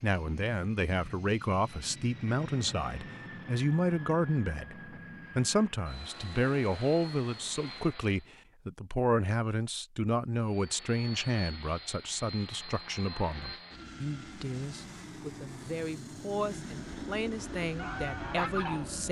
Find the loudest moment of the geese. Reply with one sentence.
The loudest moment of the geese is at 19 seconds.